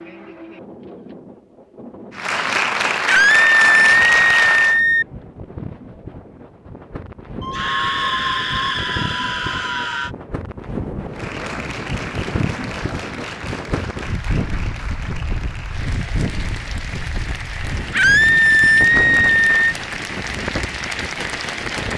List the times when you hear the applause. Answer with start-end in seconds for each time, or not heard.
2.1-4.8, 11.1-21.9.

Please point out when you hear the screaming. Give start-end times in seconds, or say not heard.
3.0-5.0, 7.4-10.1, 17.9-19.8.